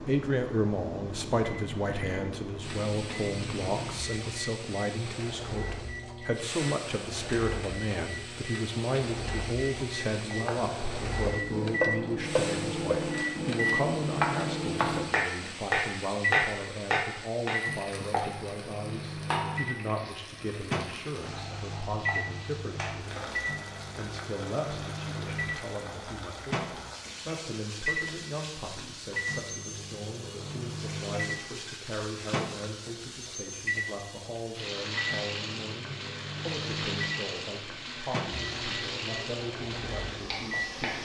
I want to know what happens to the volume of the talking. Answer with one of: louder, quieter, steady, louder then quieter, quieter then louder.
quieter.